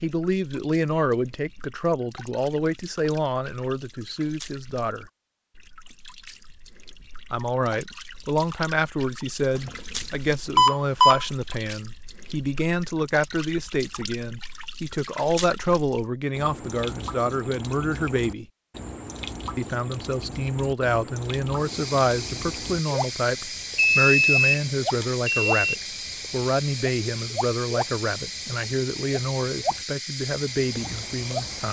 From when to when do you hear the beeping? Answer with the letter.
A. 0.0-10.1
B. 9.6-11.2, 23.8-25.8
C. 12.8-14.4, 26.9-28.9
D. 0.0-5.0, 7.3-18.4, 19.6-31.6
B.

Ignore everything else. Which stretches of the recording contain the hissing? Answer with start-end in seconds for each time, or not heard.
21.5-31.6.